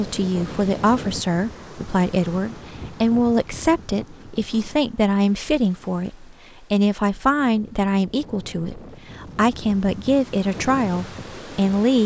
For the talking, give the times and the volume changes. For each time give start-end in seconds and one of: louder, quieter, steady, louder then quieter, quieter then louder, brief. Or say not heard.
0.0-12.0 steady.